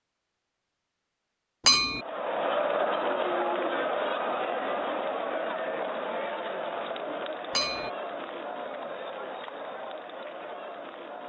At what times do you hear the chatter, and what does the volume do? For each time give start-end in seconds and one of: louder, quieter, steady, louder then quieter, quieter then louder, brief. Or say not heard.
1.9-11.2 quieter.